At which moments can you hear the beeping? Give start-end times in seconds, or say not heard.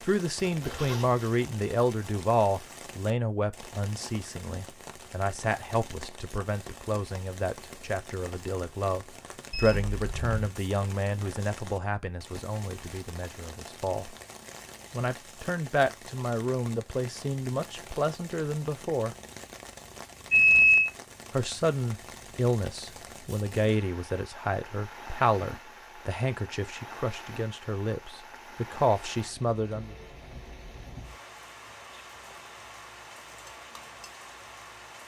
9.5-10.5, 20.3-20.9.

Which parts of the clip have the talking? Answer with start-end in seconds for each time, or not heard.
0.0-14.2, 14.9-19.1, 21.3-29.9.